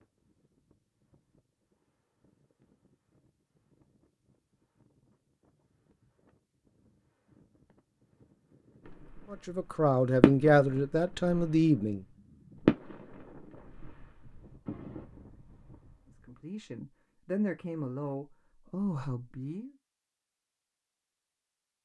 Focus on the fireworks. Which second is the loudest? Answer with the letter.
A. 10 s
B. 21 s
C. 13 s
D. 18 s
C.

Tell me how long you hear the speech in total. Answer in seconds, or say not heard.
6 s.